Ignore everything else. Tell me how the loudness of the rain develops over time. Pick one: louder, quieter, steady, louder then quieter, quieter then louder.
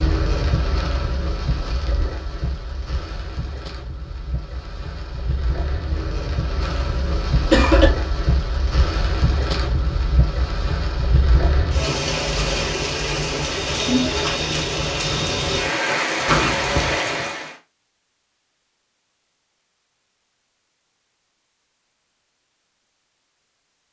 louder.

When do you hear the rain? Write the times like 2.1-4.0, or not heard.
0.0-17.6.